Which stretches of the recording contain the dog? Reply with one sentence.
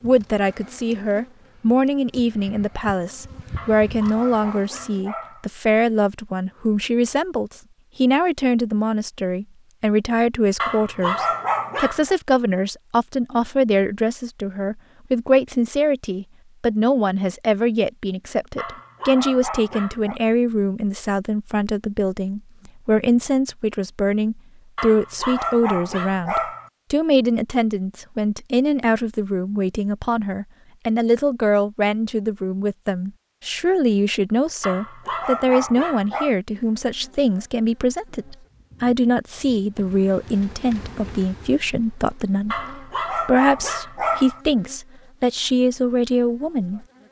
You can hear the dog from 3.5 to 5.5 s, from 10.6 to 12.2 s, from 18.6 to 20.2 s, from 24.8 to 26.7 s, from 34.6 to 36.4 s and from 42.5 to 44.4 s.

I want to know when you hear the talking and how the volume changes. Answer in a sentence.
The talking can be heard from 0.0 to 47.0 s, at a steady volume.